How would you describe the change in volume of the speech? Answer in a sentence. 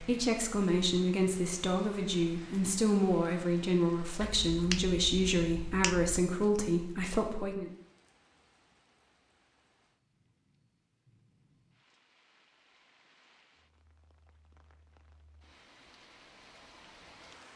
The loudness of the speech stays about the same.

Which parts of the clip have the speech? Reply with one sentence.
The speech can be heard from 0.0 to 7.7 s.